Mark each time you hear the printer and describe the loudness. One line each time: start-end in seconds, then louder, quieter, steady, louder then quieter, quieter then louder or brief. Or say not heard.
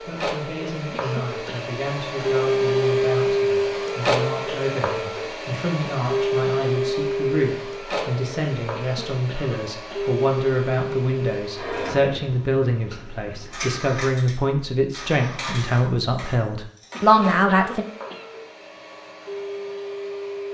0.0-20.4 quieter.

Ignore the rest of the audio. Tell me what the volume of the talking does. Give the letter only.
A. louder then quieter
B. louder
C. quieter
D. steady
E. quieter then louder
B.